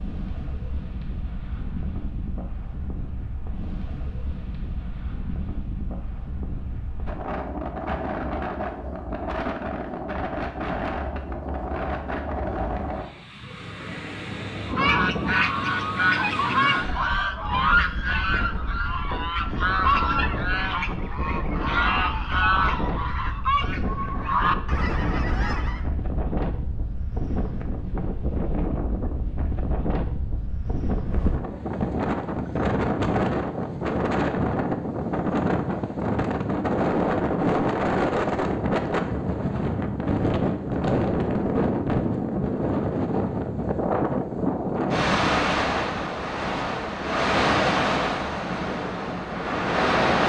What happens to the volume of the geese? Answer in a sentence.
The loudness of the geese stays about the same.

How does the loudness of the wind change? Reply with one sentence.
The volume of the wind goes up.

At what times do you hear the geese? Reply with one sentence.
The geese can be heard from 14.7 to 25.9 s.